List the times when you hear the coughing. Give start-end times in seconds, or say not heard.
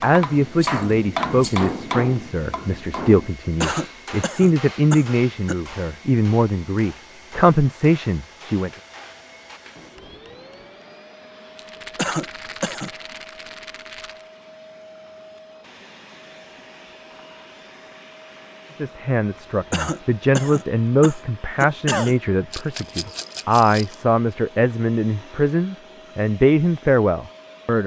3.6-5.5, 11.9-12.9, 19.7-22.1.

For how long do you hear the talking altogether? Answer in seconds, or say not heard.
18 s.